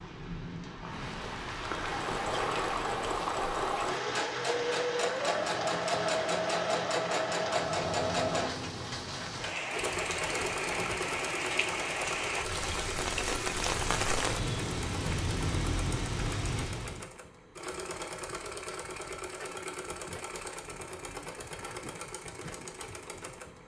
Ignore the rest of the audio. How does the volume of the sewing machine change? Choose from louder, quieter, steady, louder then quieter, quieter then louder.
quieter.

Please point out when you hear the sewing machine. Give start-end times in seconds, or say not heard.
1.7-23.6.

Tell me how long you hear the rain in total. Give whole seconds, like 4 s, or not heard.
17 s.